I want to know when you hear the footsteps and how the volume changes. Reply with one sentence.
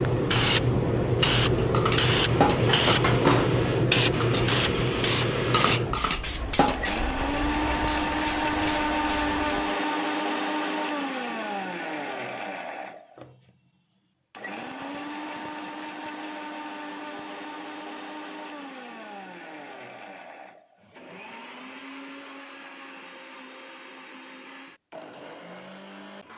The footsteps can't be heard in this clip.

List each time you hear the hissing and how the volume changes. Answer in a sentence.
The hissing can be heard from 0.0 to 9.7 s, getting quieter.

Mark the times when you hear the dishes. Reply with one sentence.
The dishes can be heard from 1.6 to 6.9 s.